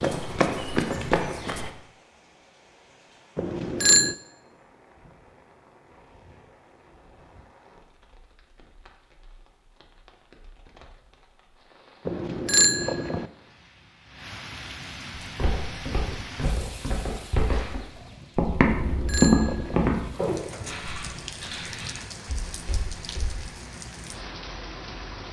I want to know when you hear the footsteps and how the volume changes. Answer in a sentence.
The footsteps can be heard briefly from 0.0 to 1.7 s; and from 15.2 to 23.4 s, getting louder then quieter.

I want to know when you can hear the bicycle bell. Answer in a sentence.
The bicycle bell can be heard from 3.4 to 4.2 s, from 12.1 to 13.2 s and from 18.6 to 19.9 s.